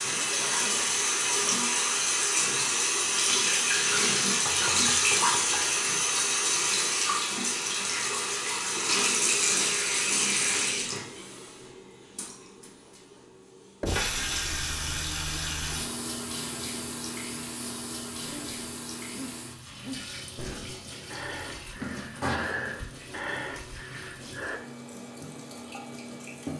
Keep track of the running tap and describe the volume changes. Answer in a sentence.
The volume of the running tap goes down.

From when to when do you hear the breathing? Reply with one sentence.
You can hear the breathing from 18.2 to 24.6 s.